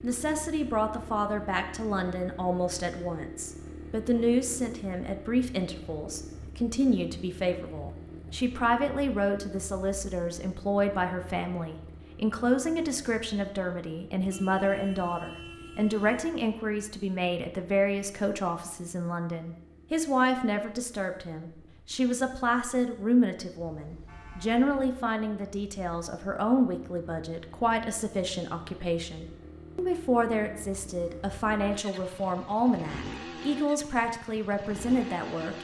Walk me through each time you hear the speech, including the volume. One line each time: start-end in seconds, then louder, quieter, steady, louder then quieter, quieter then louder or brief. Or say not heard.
0.0-35.5 steady.